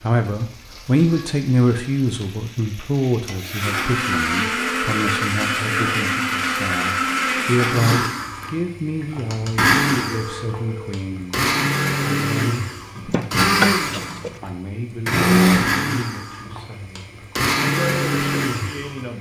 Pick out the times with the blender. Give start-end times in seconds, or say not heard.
3.5-19.1.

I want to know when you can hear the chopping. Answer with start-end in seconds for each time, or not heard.
12.9-14.4.